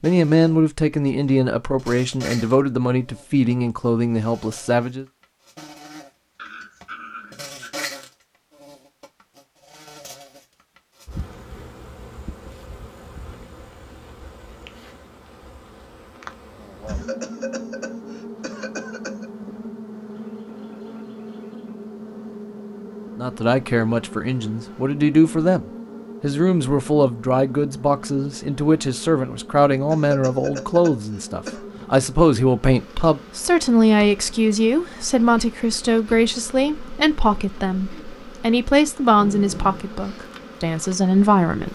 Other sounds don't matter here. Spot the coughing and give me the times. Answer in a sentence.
You can hear the coughing from 16.9 to 19.3 s and from 29.9 to 31.6 s.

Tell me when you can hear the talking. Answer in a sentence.
The talking can be heard from 0.0 to 5.0 s and from 23.1 to 41.7 s.